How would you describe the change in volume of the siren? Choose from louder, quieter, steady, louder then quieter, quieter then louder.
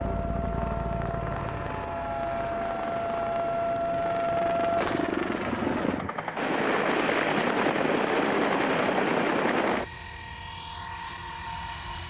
louder.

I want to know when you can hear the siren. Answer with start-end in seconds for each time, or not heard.
0.0-5.2.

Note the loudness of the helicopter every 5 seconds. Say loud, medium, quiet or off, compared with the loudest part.
medium, loud, medium.